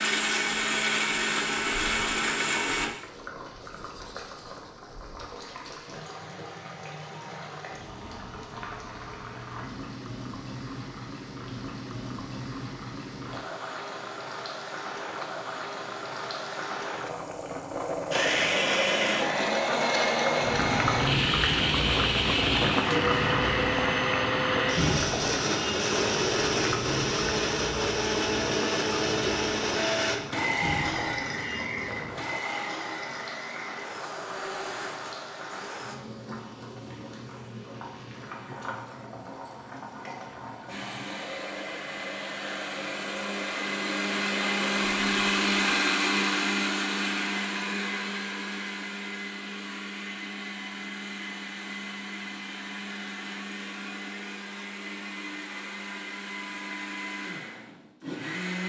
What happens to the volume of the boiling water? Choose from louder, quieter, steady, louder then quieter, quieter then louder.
louder then quieter.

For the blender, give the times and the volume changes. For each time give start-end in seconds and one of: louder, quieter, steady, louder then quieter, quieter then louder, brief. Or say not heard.
0.0-2.9 brief
18.1-36.0 quieter
40.6-58.6 louder then quieter.